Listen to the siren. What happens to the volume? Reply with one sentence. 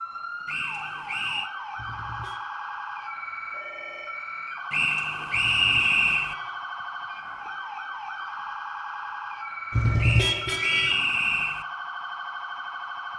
The loudness of the siren stays about the same.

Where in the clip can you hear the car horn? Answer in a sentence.
The car horn can be heard from 1.8 to 2.5 s, from 5.3 to 6.6 s and from 9.7 to 11.0 s.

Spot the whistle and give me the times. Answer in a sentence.
You can hear the whistle from 0.5 to 1.5 s, from 4.7 to 6.3 s and from 10.0 to 11.7 s.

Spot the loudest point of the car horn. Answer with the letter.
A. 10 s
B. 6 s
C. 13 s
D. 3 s
A.